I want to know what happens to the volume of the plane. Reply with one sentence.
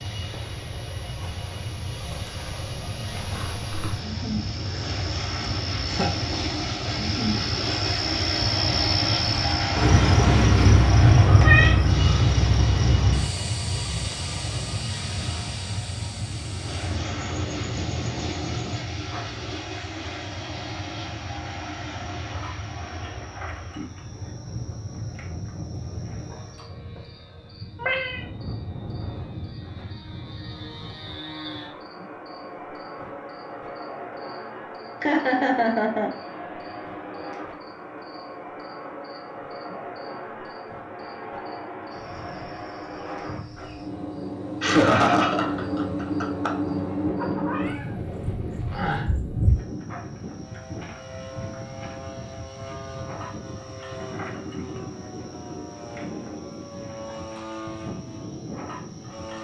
The loudness of the plane goes down.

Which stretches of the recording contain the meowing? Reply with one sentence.
The meowing can be heard from 11.2 to 11.8 s, from 27.8 to 28.2 s and from 47.1 to 49.0 s.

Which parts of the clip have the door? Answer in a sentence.
You can't hear the door here.